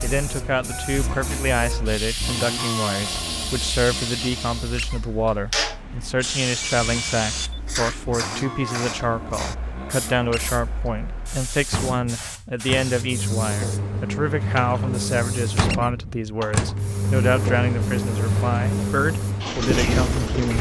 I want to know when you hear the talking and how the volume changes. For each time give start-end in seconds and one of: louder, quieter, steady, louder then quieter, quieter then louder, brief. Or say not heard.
0.0-20.5 steady.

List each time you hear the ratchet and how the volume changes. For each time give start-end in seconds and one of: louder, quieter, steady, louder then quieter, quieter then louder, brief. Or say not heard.
not heard.